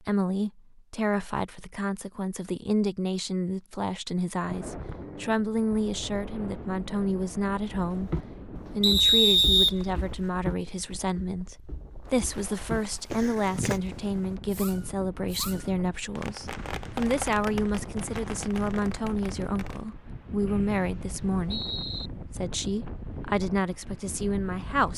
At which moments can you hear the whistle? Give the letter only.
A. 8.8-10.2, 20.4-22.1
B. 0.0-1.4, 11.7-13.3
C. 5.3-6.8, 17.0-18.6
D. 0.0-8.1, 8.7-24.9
A.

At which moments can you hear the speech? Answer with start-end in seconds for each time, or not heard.
0.0-8.1, 8.7-24.9.